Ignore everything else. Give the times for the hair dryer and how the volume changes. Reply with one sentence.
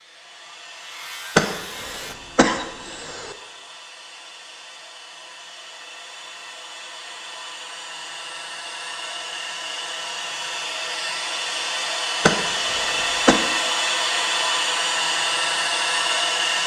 The hair dryer can be heard from 0.0 to 16.6 s, getting louder.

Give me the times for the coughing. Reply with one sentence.
The coughing can be heard from 1.4 to 3.4 s and from 12.2 to 13.4 s.